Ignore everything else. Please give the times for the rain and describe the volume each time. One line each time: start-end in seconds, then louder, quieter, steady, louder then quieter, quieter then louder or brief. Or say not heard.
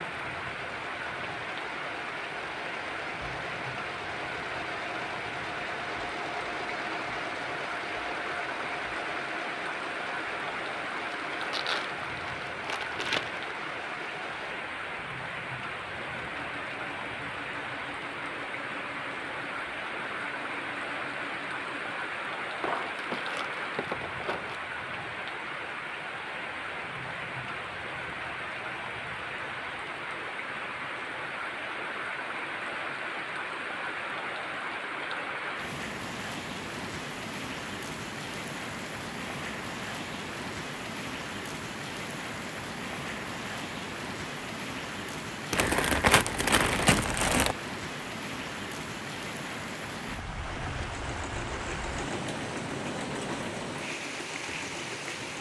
0.0-55.3 steady.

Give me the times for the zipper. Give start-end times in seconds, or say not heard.
not heard.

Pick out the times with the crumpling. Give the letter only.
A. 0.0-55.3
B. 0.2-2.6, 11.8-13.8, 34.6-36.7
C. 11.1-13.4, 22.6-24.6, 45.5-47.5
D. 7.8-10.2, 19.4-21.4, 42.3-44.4
C.